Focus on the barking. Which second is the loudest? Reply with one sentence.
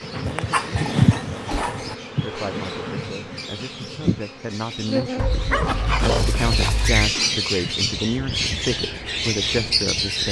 The volume of the barking peaks at 6 seconds.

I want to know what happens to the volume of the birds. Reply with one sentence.
The volume of the birds goes up.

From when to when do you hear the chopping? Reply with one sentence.
The chopping can't be heard in this clip.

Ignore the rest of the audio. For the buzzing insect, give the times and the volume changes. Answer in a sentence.
You can hear the buzzing insect from 0.0 to 10.2 s, getting quieter.